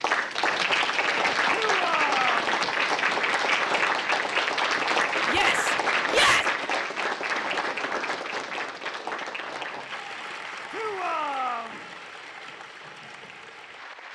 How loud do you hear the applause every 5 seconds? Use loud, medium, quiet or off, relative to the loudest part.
loud, loud, quiet.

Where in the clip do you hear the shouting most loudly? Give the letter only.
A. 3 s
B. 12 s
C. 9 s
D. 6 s
D.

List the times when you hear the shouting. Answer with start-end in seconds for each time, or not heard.
1.5-2.5, 5.2-6.5, 10.7-11.8.